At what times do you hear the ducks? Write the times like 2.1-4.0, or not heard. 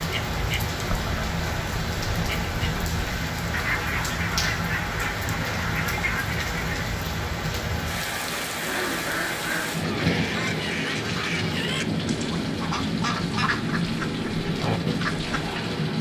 0.0-6.8, 8.6-15.6.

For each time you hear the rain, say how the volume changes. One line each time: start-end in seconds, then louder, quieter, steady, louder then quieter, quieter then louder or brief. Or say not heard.
0.0-15.9 steady.